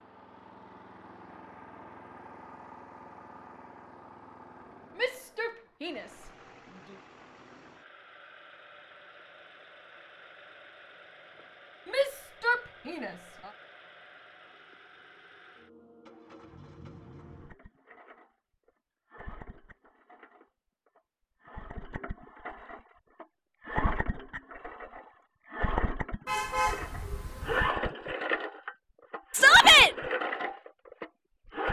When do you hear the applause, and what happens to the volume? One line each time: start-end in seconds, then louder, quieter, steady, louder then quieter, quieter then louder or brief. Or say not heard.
not heard.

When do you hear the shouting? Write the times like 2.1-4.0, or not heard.
5.0-6.3, 11.8-13.5, 29.3-29.9.